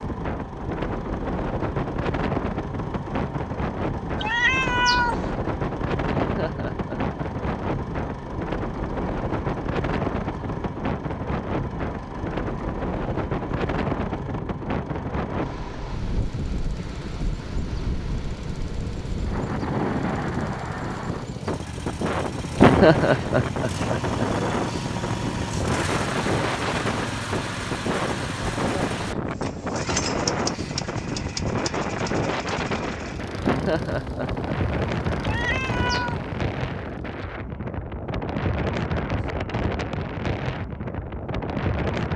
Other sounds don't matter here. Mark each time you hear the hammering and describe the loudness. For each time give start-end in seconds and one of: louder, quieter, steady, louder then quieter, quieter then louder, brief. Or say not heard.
not heard.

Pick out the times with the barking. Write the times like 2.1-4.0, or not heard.
not heard.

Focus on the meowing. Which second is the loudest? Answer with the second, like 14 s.
5 s.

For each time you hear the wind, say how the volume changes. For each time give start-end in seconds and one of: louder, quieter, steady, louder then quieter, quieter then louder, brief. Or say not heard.
0.0-42.1 steady.